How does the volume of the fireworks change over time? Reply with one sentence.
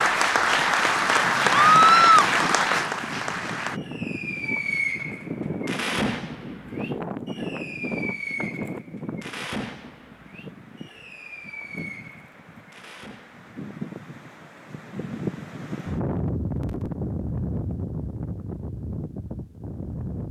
The loudness of the fireworks goes down.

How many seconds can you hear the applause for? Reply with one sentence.
You can hear the applause for 4 seconds altogether.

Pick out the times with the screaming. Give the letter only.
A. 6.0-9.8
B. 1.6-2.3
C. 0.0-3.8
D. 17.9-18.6
B.